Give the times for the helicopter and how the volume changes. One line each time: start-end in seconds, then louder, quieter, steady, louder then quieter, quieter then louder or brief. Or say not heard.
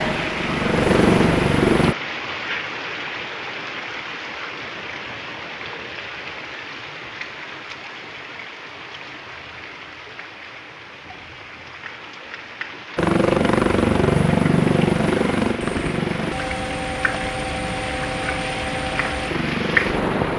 0.0-1.9 brief
12.9-20.3 quieter.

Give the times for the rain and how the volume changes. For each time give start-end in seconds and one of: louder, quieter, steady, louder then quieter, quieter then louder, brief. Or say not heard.
0.0-20.3 quieter then louder.